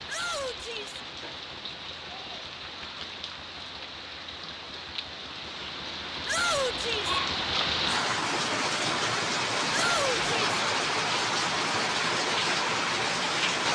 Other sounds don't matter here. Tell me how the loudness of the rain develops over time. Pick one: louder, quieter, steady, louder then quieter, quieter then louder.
louder.